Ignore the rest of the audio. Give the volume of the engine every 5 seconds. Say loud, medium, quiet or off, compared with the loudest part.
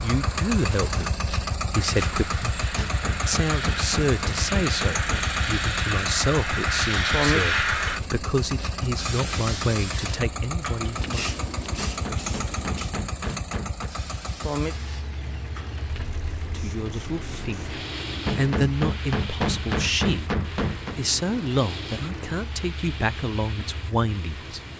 loud, loud, loud, medium, medium.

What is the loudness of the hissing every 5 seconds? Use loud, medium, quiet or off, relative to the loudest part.
medium, loud, medium, quiet, quiet.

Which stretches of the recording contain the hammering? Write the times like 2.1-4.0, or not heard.
2.8-5.3, 11.8-13.9, 18.2-21.0.